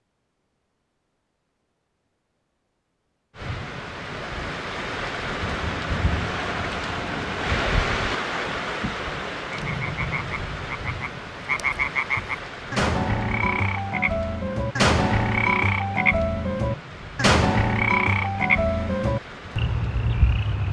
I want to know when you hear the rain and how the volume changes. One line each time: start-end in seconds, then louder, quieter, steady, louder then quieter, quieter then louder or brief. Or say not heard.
3.4-20.6 quieter.